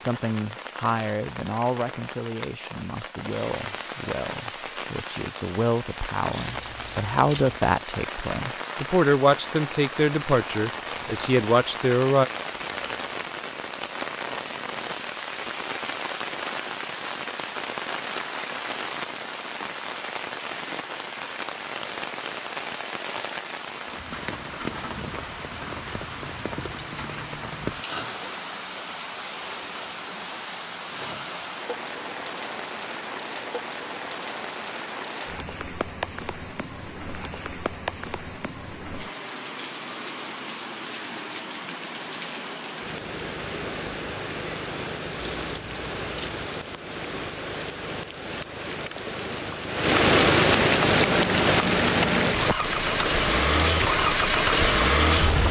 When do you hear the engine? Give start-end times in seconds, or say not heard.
51.0-55.4.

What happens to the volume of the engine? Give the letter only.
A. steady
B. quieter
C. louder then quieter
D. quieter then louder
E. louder
E.